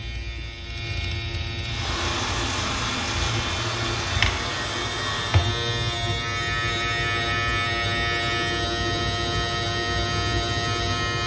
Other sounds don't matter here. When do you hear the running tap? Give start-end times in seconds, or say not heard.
1.6-5.5.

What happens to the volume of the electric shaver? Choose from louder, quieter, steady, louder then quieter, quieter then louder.
louder.